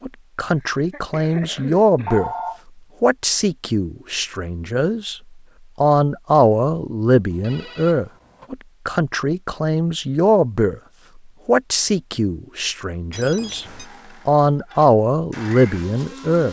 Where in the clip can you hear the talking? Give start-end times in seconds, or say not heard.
0.0-2.3, 3.0-10.8, 11.4-13.7, 14.2-16.4.